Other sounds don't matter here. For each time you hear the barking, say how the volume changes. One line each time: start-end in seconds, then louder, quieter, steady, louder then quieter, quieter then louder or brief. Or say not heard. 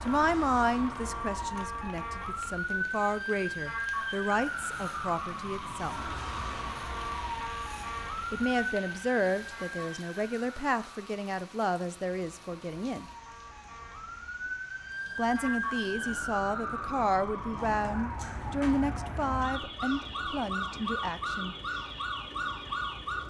not heard.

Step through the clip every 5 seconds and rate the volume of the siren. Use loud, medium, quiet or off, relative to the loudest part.
loud, loud, medium, loud, loud.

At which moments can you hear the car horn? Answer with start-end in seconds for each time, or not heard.
not heard.